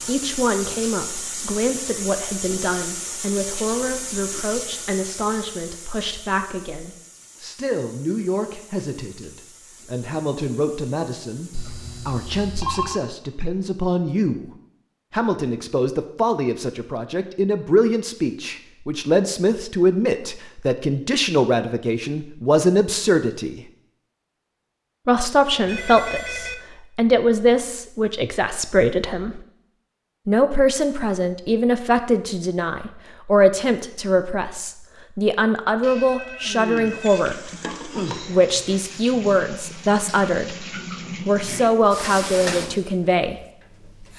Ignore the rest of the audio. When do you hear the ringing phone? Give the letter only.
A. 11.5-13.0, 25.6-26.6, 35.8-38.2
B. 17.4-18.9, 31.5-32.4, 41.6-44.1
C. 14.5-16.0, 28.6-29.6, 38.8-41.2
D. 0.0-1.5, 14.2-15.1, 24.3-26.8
A.